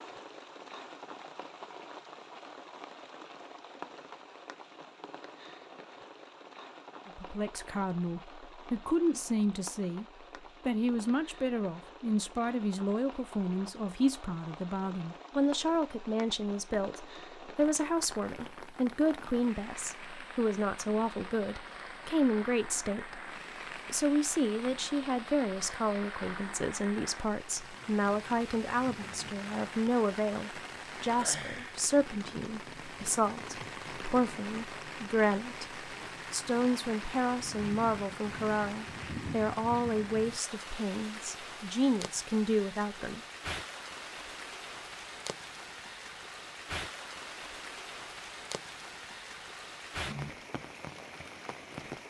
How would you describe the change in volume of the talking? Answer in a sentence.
The loudness of the talking stays about the same.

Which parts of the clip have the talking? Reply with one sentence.
You can hear the talking from 7.0 to 10.1 s, from 10.7 to 23.2 s and from 23.9 to 43.2 s.